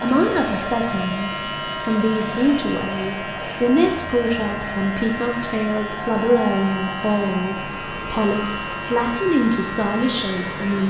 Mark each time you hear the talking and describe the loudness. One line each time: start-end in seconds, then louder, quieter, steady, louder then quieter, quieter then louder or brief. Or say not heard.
0.0-10.8 steady.